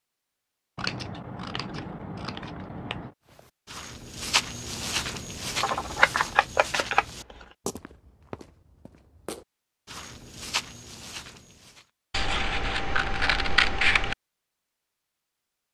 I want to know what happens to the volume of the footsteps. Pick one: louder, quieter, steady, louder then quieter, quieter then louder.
quieter then louder.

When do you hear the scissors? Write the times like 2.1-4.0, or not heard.
0.8-3.1, 5.6-7.5, 12.1-14.2.